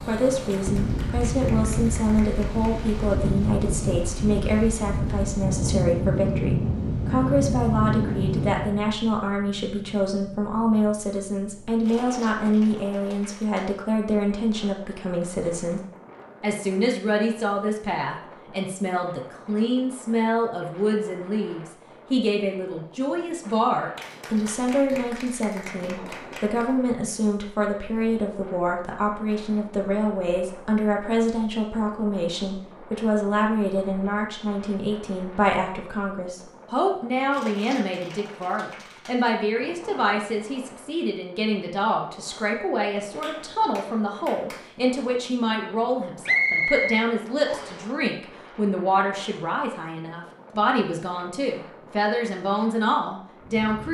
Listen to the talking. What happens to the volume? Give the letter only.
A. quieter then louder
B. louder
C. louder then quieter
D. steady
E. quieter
D.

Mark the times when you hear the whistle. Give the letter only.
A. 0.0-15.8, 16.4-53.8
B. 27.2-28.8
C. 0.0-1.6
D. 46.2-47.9
D.